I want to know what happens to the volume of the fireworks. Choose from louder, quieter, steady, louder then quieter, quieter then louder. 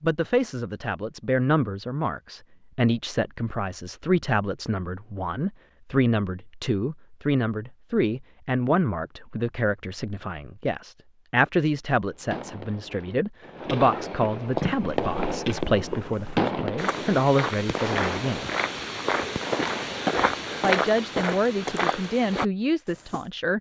louder then quieter.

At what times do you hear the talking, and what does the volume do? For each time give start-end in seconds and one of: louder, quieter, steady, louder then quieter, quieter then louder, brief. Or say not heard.
0.0-18.5 steady
20.6-23.5 brief.